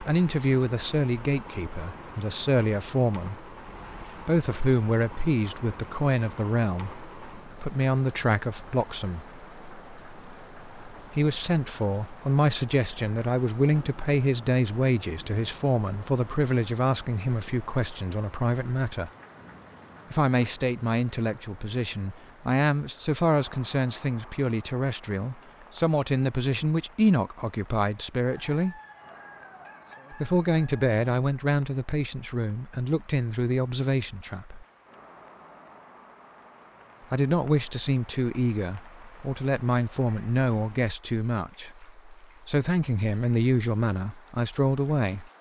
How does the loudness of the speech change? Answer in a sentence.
The loudness of the speech stays about the same.